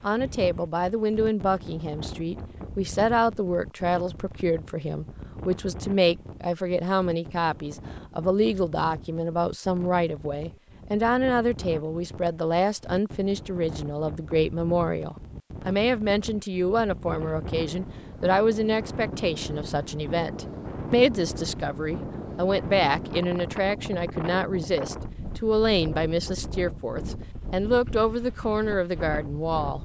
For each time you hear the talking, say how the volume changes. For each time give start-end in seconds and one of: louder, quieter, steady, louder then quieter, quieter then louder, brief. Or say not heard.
0.0-29.8 steady.